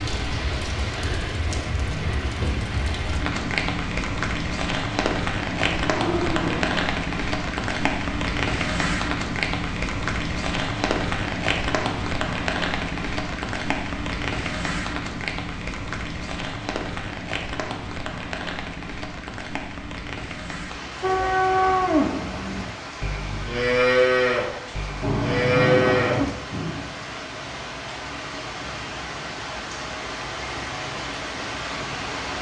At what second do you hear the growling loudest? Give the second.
26 s.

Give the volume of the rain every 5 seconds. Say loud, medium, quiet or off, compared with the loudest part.
loud, loud, loud, medium, medium, medium, medium.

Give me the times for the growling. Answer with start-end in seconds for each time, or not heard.
5.5-6.8, 25.0-26.9.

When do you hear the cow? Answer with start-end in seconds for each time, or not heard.
21.0-26.4.